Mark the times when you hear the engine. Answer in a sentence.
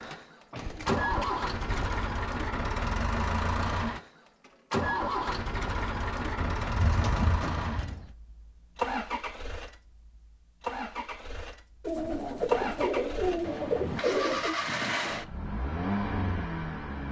The engine can be heard from 0.0 to 17.0 s.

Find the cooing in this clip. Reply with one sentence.
You can hear the cooing from 0.6 to 2.0 s, from 6.3 to 8.1 s and from 11.8 to 14.6 s.